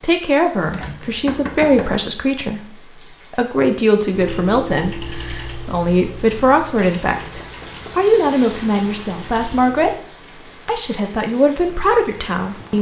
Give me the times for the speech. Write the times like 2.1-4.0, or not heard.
0.0-9.9, 10.7-12.7.